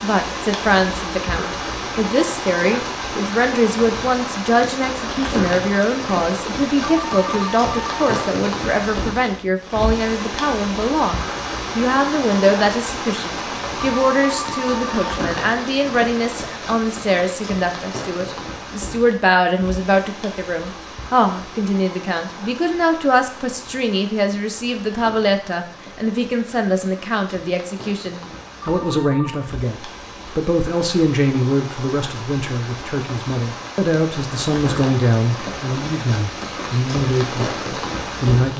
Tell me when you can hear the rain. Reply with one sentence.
The rain can be heard from 0.0 to 38.5 s.